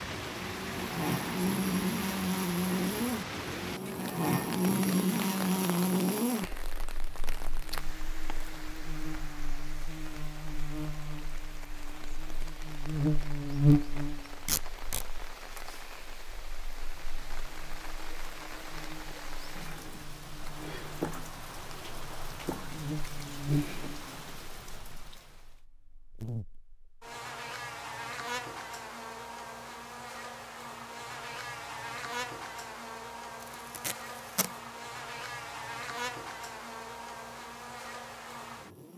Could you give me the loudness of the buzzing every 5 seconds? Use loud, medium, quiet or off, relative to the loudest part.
loud, loud, loud, quiet, medium, medium, medium, medium.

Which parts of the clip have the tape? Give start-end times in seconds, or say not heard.
14.4-15.1, 33.4-34.5.